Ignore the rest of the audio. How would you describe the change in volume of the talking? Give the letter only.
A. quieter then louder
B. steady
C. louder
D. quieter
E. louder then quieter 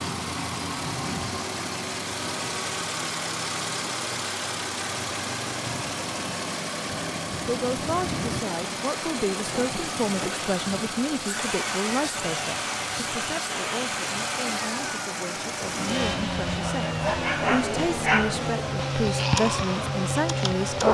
A.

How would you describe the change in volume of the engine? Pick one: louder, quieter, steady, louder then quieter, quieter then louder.
steady.